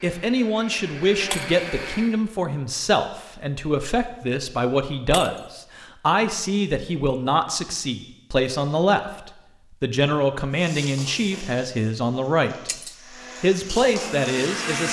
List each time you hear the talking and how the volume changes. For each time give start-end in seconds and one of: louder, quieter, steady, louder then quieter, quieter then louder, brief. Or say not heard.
0.0-12.7 steady
13.4-14.8 brief.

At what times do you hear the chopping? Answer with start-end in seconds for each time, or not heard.
not heard.